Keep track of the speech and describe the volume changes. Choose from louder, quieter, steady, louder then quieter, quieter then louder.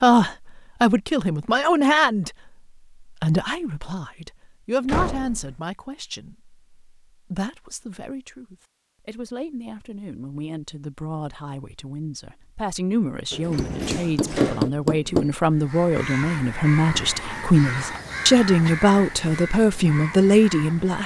quieter then louder.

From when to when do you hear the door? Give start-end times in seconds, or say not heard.
4.8-5.6, 13.3-14.7.